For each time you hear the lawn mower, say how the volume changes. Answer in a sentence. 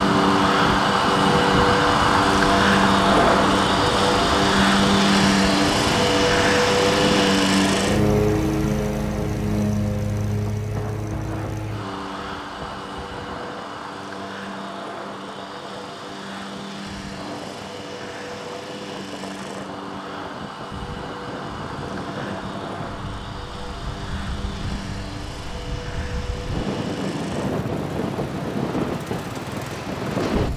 The lawn mower can be heard from 0.0 to 30.5 s, getting quieter.